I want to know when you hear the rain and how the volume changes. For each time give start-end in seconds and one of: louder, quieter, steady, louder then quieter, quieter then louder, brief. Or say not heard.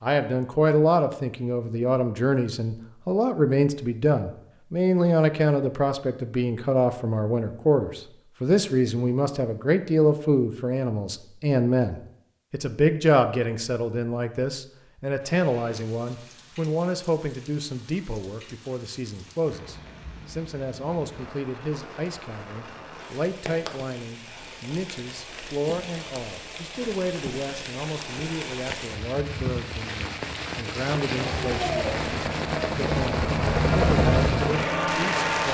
15.2-35.4 louder.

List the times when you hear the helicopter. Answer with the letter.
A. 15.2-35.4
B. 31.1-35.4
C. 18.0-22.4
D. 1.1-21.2
B.